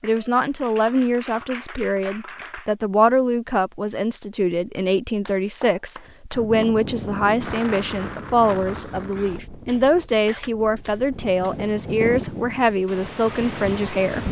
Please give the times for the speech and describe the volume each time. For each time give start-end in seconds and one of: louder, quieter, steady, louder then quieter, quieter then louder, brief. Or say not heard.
0.0-14.2 steady.